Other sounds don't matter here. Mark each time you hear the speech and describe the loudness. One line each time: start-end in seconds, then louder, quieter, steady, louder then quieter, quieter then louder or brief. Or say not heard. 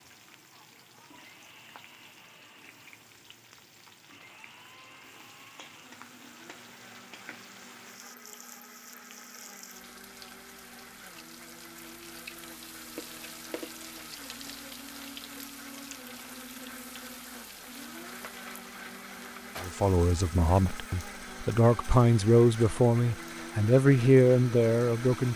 19.6-25.3 louder.